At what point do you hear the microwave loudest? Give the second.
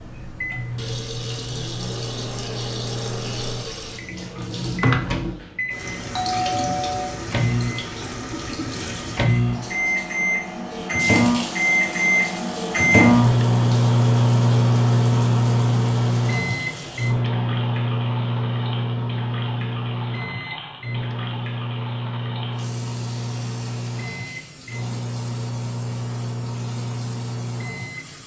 13 s.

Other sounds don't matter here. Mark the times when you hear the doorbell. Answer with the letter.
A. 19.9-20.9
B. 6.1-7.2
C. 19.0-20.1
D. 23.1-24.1
B.